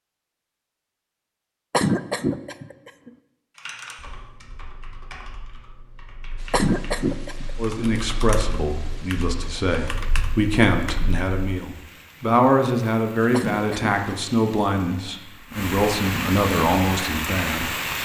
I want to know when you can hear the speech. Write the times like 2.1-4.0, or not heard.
7.5-17.8.